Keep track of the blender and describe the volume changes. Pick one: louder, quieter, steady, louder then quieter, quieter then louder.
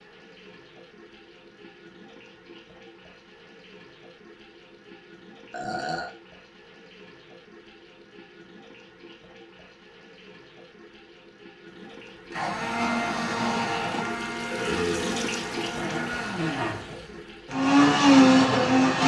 quieter then louder.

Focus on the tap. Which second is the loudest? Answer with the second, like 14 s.
15 s.